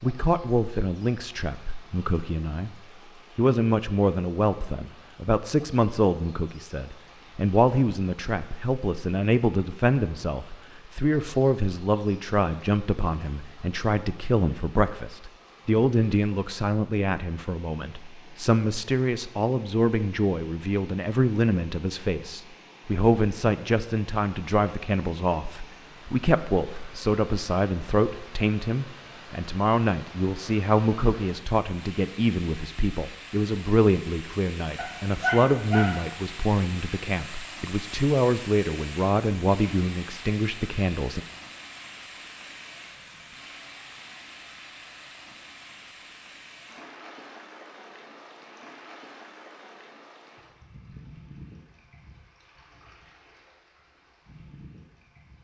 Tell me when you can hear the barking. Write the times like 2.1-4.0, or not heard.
34.8-36.0.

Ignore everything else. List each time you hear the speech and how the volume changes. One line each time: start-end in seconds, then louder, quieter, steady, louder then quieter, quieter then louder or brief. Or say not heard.
0.0-2.8 brief
3.4-41.2 steady.